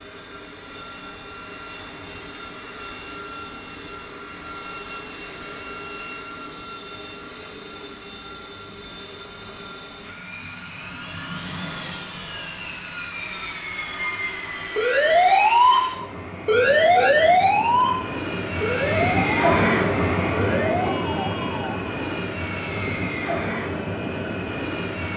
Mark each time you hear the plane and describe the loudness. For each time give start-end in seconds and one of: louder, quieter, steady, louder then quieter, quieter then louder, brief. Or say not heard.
0.0-25.1 louder.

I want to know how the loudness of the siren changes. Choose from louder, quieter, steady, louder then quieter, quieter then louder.
quieter.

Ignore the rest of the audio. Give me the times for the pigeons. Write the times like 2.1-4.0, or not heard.
not heard.